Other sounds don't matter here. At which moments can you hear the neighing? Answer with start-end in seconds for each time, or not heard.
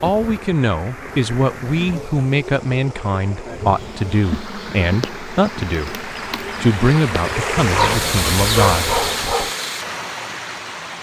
not heard.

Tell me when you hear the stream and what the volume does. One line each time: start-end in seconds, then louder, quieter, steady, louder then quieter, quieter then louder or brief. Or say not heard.
0.0-10.9 louder.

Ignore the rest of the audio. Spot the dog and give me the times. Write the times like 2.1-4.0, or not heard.
7.5-9.5.